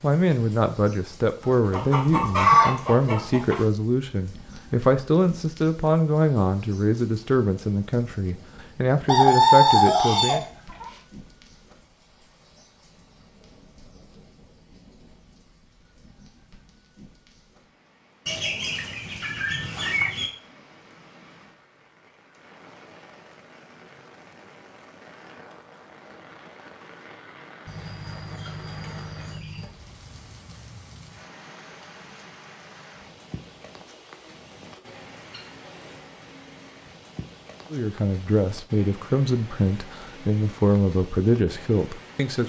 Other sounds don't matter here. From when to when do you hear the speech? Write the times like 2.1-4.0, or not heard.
0.0-10.4, 37.7-42.4.